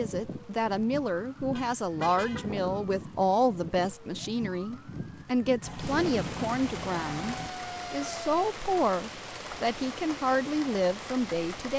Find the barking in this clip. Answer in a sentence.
You can't hear the barking here.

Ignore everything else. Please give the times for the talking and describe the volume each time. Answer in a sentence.
You can hear the talking from 0.0 to 11.7 s, at a steady volume.